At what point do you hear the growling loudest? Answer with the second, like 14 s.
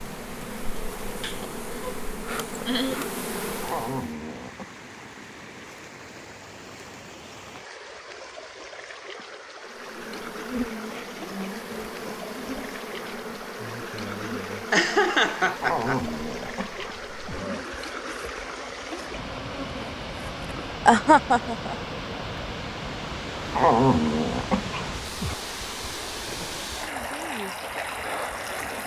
24 s.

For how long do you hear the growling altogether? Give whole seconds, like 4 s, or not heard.
5 s.